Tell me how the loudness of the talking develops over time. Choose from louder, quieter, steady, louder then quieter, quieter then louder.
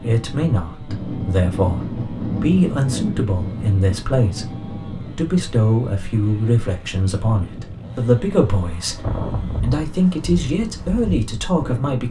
steady.